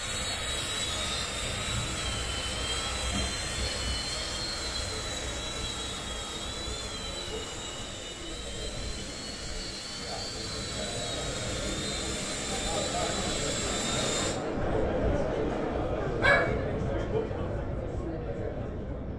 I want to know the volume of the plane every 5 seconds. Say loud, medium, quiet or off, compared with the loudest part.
loud, medium, loud, off.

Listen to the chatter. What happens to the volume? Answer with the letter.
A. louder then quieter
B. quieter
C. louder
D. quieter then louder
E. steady
C.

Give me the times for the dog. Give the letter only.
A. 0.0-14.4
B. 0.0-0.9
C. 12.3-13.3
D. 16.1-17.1
D.